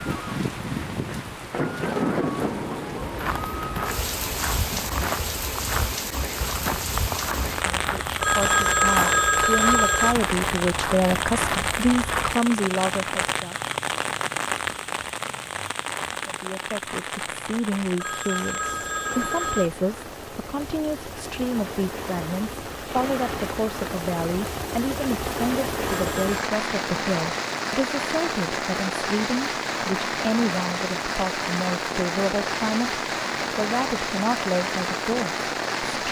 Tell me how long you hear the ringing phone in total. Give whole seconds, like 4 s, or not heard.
4 s.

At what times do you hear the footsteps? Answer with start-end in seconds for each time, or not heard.
3.0-12.3.